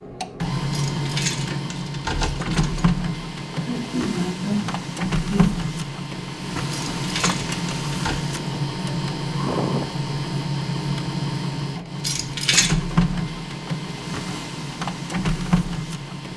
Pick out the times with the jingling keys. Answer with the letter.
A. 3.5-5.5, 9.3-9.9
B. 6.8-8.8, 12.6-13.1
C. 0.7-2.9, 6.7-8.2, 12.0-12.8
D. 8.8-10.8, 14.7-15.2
C.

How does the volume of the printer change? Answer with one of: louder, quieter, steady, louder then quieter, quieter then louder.
steady.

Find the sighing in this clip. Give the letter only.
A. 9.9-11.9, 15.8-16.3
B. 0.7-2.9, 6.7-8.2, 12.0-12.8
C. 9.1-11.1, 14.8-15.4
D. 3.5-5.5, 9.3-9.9
D.